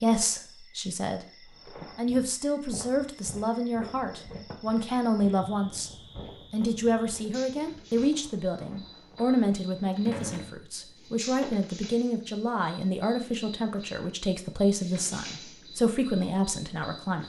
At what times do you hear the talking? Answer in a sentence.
The talking can be heard from 0.0 to 1.2 s, from 1.9 to 5.9 s and from 6.5 to 17.2 s.